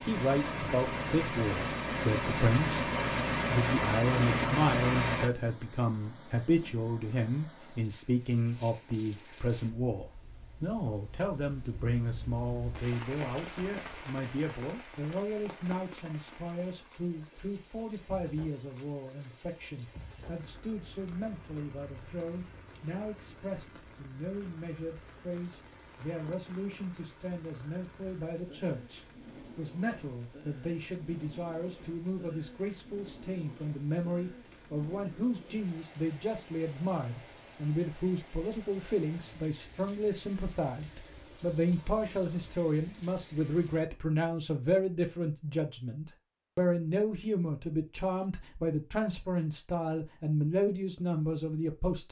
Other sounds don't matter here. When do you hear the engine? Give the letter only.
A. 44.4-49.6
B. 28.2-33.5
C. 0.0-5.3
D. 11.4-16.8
C.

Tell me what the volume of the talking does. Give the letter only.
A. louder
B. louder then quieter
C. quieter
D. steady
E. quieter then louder
E.